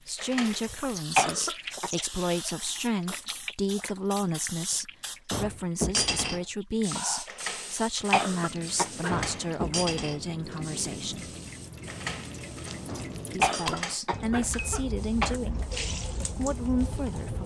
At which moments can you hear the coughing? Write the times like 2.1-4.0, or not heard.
1.1-1.9, 8.1-9.2, 13.4-15.4.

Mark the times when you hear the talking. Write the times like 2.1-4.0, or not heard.
0.1-11.3, 13.3-17.4.